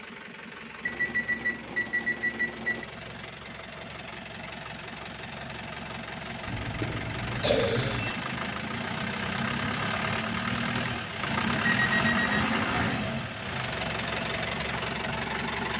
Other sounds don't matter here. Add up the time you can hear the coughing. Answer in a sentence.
The coughing can be heard for 2 seconds in total.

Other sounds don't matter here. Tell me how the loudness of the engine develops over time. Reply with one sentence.
The volume of the engine goes up.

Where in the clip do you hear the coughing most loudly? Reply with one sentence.
The volume of the coughing peaks at 8 seconds.